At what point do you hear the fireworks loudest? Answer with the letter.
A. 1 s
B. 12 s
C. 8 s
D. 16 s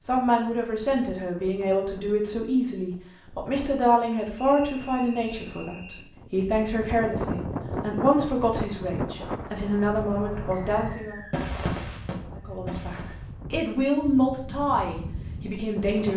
B.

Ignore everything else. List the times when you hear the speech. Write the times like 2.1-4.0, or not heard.
0.1-11.2, 12.3-16.1.